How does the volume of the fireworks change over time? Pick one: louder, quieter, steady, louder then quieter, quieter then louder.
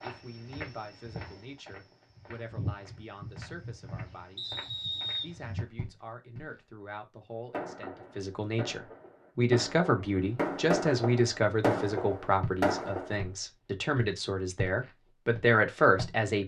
louder.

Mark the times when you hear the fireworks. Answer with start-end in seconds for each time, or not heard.
7.5-13.2.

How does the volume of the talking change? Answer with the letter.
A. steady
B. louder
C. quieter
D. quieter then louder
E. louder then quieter
B.